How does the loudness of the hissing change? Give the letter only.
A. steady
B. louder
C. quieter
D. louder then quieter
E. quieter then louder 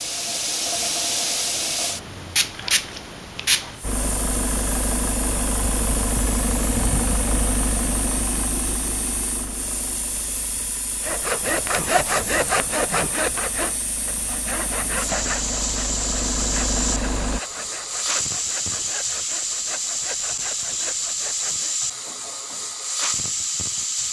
E.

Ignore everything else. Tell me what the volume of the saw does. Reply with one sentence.
The volume of the saw goes down.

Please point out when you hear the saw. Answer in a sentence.
The saw can be heard from 11.0 to 21.8 s.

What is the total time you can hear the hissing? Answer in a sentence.
The hissing can be heard for 24 seconds in total.